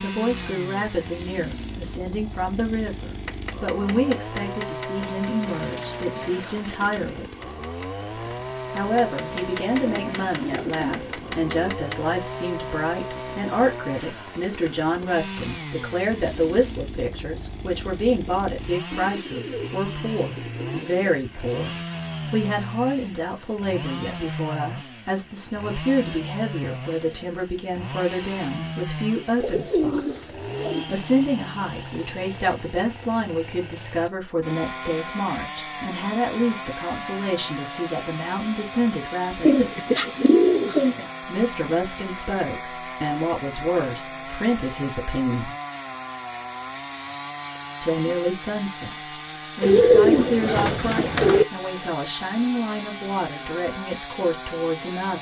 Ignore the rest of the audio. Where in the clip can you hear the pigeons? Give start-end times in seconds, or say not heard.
5.0-7.0, 9.8-11.5, 18.9-21.1, 29.4-30.9, 39.5-41.0, 49.6-51.5.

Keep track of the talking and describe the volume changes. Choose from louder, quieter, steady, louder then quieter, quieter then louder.
steady.